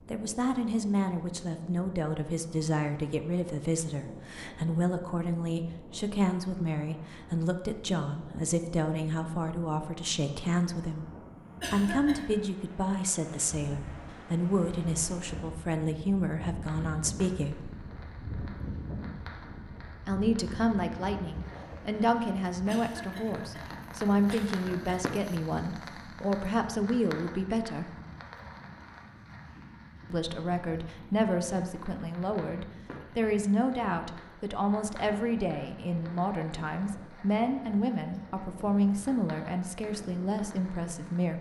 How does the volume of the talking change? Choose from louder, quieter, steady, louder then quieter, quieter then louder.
steady.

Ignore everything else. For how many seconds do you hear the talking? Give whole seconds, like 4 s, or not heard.
36 s.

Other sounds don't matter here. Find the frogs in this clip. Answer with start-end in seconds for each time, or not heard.
not heard.